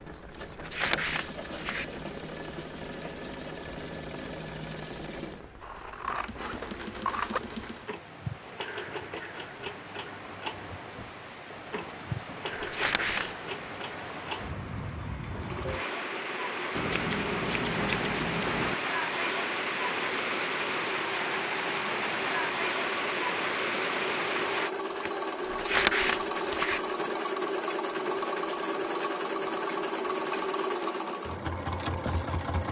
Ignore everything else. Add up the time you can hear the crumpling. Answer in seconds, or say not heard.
4 s.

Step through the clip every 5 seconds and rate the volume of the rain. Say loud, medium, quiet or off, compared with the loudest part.
quiet, quiet, medium, loud, loud, off, off.